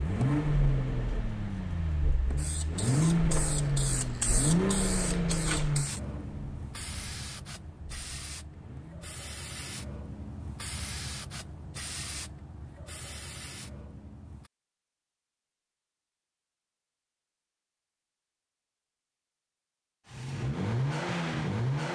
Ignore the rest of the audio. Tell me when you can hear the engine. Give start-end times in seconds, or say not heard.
0.0-9.2, 20.1-21.9.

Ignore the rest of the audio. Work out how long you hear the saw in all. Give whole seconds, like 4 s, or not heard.
not heard.